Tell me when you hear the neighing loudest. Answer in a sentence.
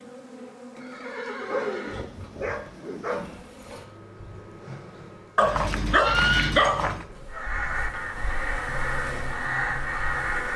The volume of the neighing peaks at 6 seconds.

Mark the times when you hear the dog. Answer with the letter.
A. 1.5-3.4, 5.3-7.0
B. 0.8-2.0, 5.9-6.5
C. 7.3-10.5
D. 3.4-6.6
A.